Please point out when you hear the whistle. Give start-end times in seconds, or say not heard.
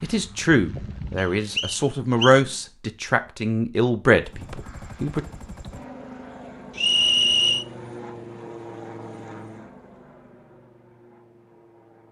1.1-2.4, 6.8-7.7.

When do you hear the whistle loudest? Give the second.
7 s.